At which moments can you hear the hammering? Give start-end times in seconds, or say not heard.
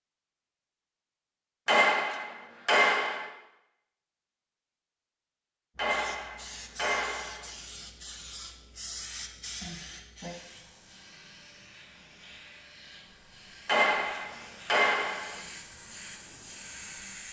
1.6-3.3, 5.8-7.5, 13.7-15.4.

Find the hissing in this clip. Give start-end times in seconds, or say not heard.
5.8-17.2.